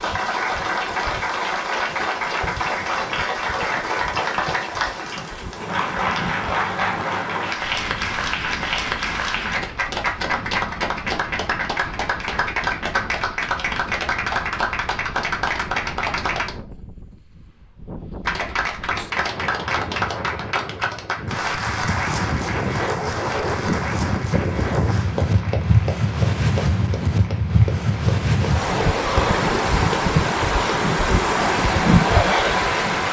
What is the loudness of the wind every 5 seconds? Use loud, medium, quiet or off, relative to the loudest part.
quiet, quiet, quiet, quiet, medium, loud, loud.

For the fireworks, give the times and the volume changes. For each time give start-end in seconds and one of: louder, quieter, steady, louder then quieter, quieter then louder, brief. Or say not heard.
not heard.